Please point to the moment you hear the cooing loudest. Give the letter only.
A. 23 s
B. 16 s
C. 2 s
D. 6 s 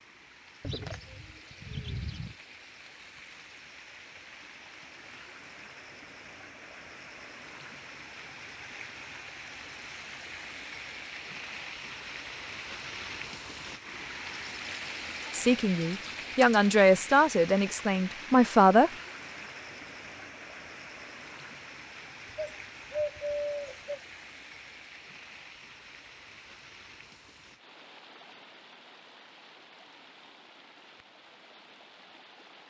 A.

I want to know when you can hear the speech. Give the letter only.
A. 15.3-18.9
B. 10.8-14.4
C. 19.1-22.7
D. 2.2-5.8
A.